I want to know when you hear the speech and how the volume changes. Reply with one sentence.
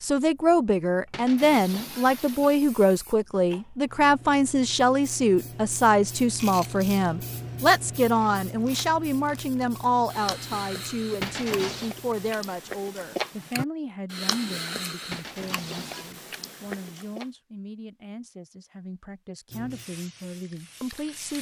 The speech can be heard from 0.0 to 21.3 s, getting quieter.